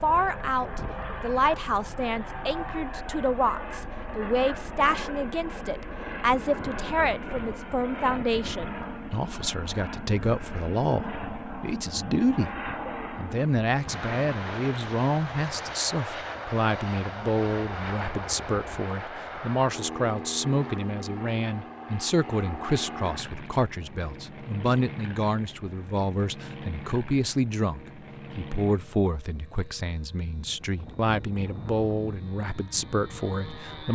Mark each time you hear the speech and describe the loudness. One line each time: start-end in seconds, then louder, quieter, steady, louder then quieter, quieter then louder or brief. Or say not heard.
0.0-12.5 steady
13.2-33.8 steady.